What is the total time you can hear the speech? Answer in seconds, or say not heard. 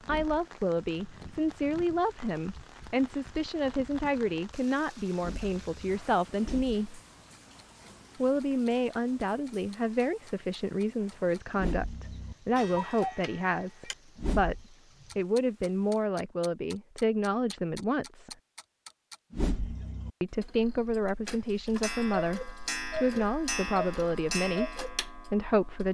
23 s.